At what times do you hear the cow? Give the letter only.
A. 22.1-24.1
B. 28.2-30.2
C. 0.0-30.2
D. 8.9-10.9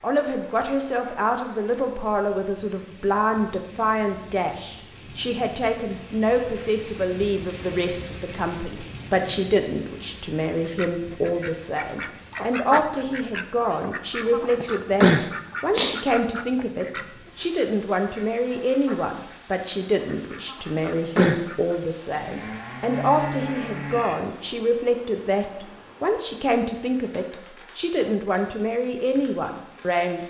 A.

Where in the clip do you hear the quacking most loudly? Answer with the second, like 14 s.
15 s.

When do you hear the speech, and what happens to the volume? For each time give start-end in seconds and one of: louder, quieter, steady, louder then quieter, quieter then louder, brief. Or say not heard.
0.0-30.2 steady.